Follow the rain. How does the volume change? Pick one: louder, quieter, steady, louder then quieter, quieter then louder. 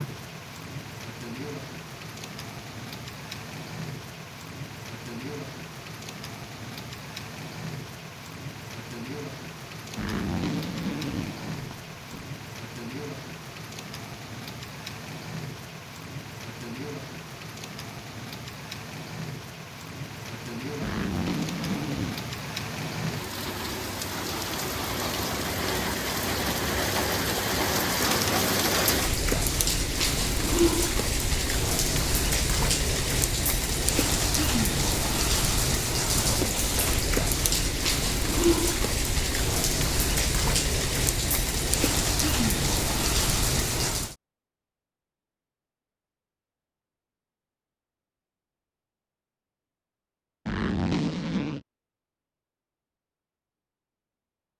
louder.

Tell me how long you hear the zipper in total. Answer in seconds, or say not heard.
5 s.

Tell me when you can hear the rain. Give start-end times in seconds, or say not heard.
0.0-44.1.